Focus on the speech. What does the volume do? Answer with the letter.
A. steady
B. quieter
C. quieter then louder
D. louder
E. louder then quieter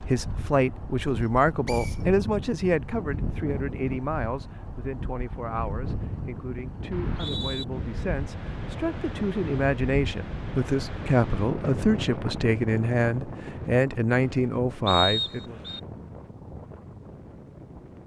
C.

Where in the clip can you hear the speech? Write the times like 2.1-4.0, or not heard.
0.0-15.6.